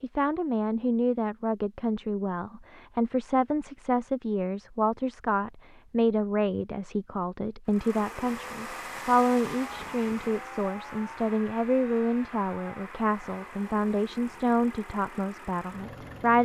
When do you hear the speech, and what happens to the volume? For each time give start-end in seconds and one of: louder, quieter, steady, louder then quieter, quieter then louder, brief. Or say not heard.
0.0-16.4 steady.